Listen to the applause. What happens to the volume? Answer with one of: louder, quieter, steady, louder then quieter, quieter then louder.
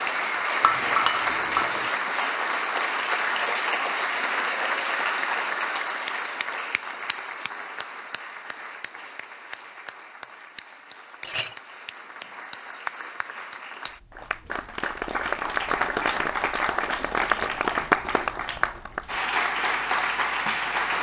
quieter then louder.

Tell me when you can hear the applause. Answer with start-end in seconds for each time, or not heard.
0.0-20.9.